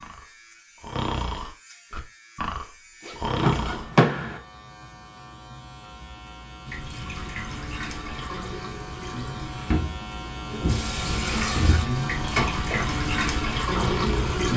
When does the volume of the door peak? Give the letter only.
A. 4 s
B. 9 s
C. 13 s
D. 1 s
A.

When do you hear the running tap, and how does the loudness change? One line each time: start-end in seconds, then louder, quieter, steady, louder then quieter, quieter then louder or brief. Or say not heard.
6.7-14.5 louder.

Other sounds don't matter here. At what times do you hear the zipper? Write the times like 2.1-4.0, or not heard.
3.0-4.0.